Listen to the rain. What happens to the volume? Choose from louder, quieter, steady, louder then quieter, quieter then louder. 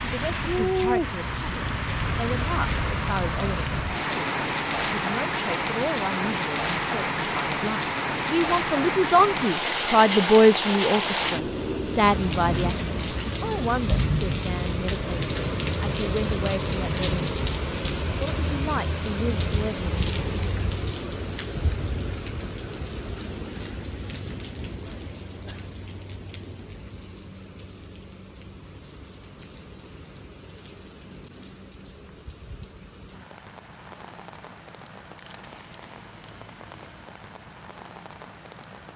quieter.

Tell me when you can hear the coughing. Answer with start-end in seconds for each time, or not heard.
24.9-25.7.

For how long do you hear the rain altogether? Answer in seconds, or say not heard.
39 s.